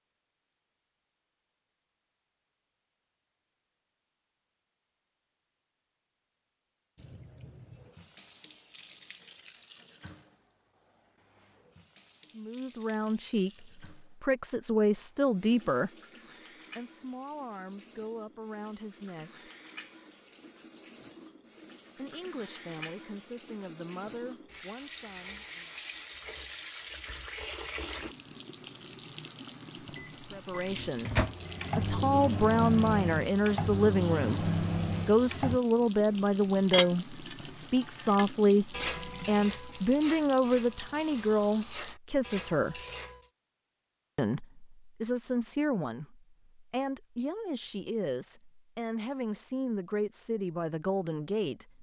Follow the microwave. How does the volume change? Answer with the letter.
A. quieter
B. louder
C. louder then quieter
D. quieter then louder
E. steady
E.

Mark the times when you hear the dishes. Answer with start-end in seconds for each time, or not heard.
36.7-43.2.